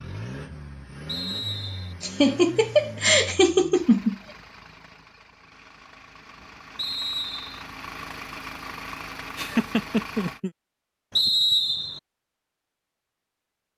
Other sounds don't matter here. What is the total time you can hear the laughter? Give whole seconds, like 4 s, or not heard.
3 s.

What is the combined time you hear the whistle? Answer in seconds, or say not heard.
3 s.